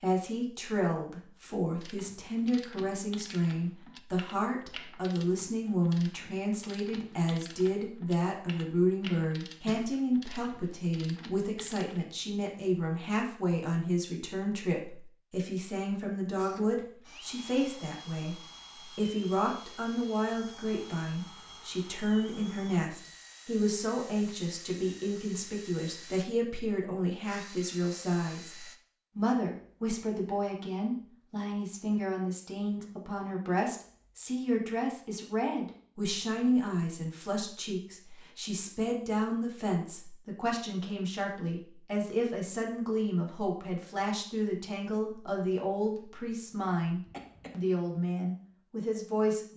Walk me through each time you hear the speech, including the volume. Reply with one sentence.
You can hear the speech from 0.0 to 49.5 s, at a steady volume.